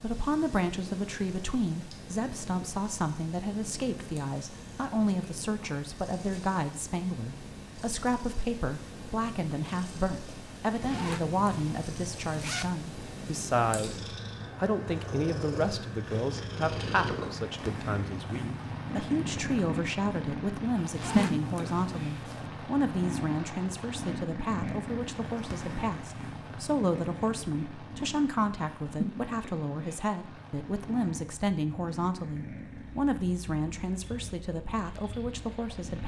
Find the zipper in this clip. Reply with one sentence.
The zipper can be heard from 10.8 to 12.8 s and from 20.9 to 22.5 s.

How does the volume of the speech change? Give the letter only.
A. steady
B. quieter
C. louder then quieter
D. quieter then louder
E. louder
A.